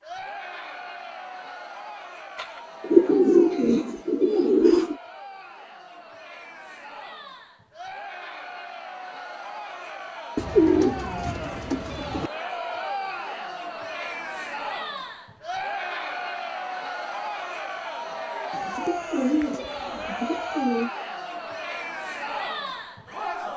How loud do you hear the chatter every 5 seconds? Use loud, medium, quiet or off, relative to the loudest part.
medium, medium, loud, loud, loud.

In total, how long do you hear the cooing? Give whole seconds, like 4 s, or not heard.
7 s.